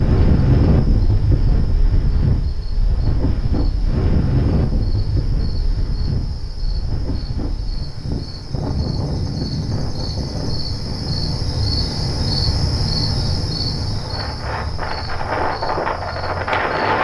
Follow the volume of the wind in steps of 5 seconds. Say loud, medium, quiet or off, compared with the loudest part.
loud, medium, medium, loud.